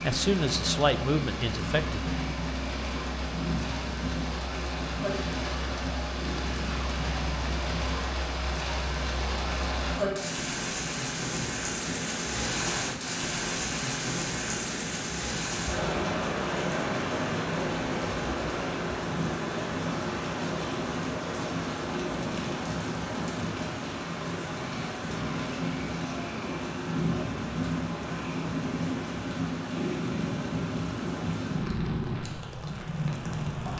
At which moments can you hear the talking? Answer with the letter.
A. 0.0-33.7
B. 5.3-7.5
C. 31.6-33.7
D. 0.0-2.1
D.